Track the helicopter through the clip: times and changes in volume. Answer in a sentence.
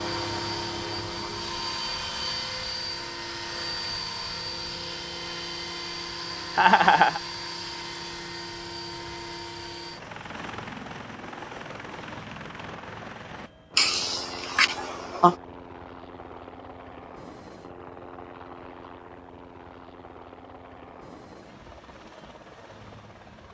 The helicopter can be heard from 0.0 to 23.4 s, getting quieter.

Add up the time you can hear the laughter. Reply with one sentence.
You can hear the laughter for 2 seconds altogether.